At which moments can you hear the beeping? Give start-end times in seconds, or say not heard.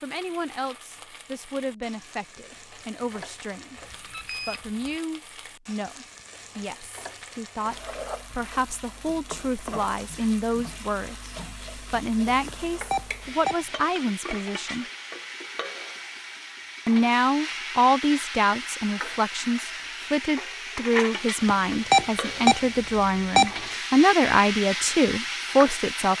3.8-4.9, 12.4-13.6, 21.4-23.5.